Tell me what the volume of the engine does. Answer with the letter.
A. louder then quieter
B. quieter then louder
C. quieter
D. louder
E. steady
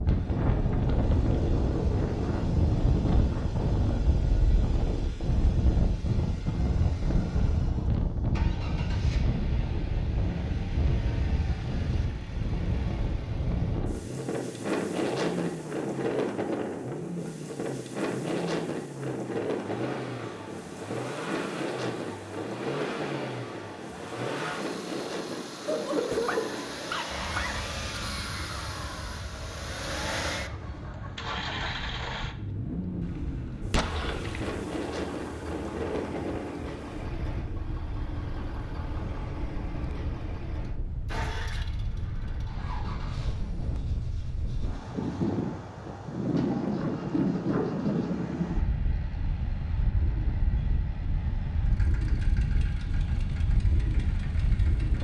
A.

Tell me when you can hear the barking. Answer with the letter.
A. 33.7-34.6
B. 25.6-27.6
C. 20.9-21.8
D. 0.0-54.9
B.